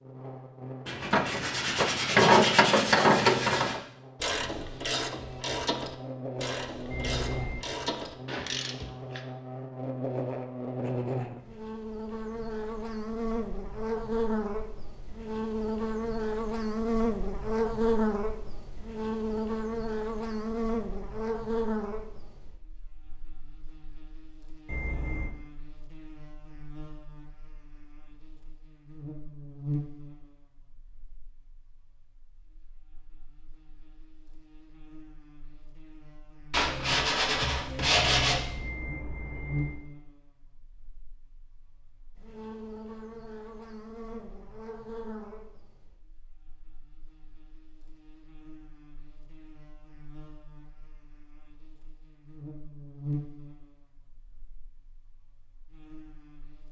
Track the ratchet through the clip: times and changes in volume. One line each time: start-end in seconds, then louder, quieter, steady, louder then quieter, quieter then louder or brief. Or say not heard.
1.1-9.2 quieter.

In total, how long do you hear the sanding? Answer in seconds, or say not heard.
5 s.